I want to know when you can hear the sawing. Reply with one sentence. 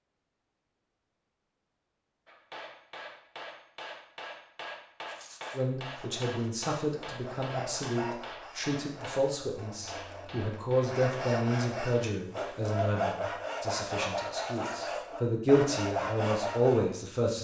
The sawing can be heard from 5.8 to 16.9 s.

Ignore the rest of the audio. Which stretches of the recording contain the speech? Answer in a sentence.
The speech can be heard from 5.5 to 17.3 s.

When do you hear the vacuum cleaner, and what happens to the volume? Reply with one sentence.
You can't hear the vacuum cleaner here.